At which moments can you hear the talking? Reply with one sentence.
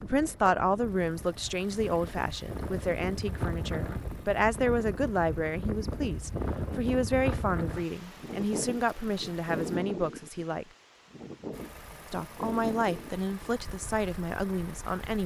The talking can be heard from 0.0 to 10.7 s and from 12.1 to 15.2 s.